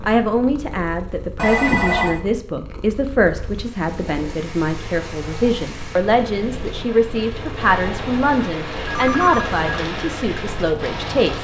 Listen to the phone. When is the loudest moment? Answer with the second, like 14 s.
2 s.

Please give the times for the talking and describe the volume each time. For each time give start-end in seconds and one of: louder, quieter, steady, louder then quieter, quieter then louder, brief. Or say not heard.
0.0-11.3 steady.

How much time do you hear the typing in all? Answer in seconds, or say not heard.
not heard.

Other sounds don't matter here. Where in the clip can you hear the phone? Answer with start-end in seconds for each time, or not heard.
1.4-2.2, 8.8-9.6.